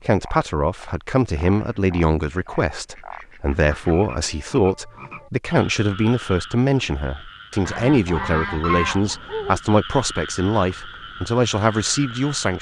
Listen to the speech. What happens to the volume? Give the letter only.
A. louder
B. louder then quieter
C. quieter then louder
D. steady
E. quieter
D.